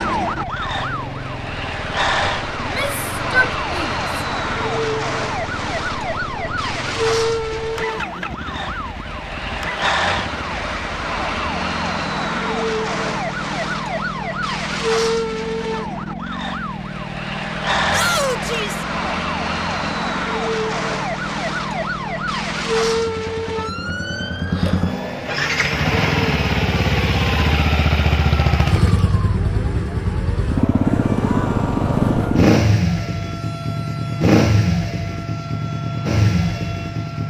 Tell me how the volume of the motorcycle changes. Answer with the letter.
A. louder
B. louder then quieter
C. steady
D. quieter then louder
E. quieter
A.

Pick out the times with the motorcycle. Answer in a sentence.
You can hear the motorcycle from 0.1 to 37.2 s.